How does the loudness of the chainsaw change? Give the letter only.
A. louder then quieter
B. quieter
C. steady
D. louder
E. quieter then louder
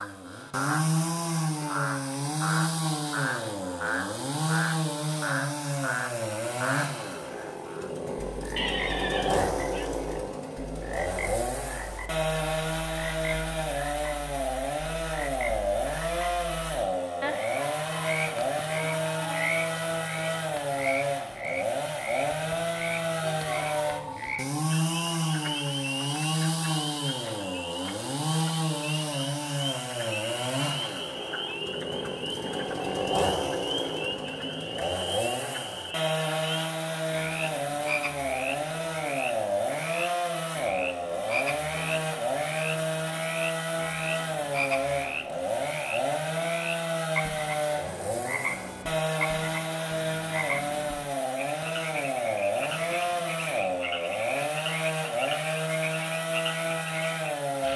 C.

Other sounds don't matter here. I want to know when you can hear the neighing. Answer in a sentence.
The neighing can be heard from 8.6 to 9.9 s.